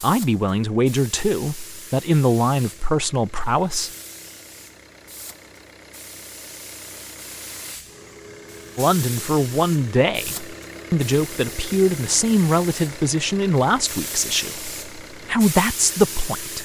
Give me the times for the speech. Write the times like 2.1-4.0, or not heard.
0.0-3.9, 8.8-16.5.